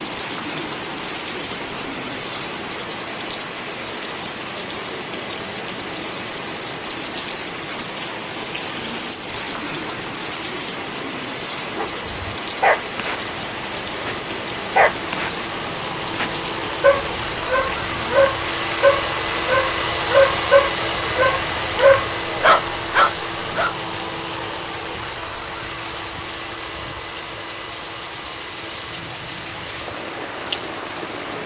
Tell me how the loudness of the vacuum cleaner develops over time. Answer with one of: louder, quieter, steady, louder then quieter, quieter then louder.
louder then quieter.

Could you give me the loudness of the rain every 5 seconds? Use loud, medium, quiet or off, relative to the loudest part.
loud, loud, loud, loud, medium, medium, loud.